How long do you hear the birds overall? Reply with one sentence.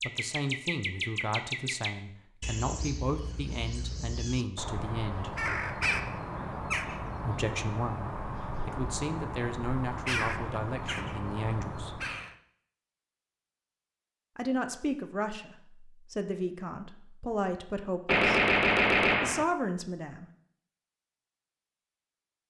You can hear the birds for 12 seconds altogether.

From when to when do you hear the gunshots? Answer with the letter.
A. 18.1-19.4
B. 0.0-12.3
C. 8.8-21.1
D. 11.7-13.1
A.